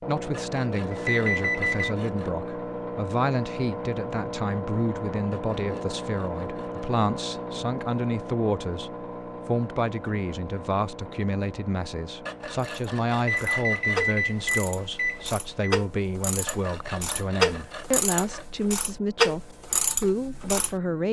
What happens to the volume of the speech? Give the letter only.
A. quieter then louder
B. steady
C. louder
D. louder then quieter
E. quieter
B.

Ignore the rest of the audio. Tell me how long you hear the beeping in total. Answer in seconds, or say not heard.
4 s.